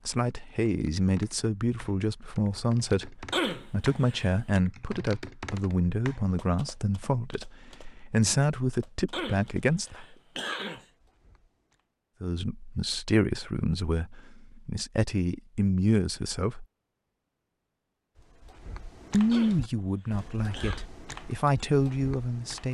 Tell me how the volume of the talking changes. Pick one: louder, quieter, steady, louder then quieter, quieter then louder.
steady.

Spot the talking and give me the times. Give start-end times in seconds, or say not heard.
0.1-10.0, 12.2-16.6, 19.1-22.6.